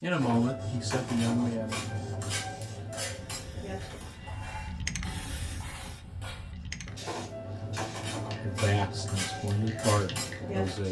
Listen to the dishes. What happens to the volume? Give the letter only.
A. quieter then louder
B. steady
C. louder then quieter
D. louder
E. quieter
A.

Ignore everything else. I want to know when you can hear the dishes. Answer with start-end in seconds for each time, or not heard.
0.2-10.8.